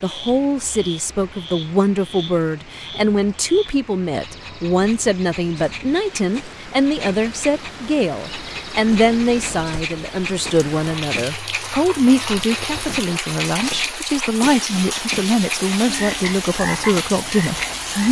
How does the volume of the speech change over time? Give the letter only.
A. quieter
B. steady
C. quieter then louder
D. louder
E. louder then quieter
B.